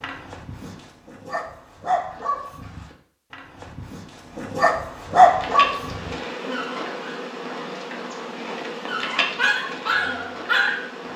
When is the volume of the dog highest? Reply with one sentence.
The loudest moment of the dog is at 5 seconds.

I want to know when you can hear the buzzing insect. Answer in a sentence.
You can hear the buzzing insect from 5.2 to 11.1 s.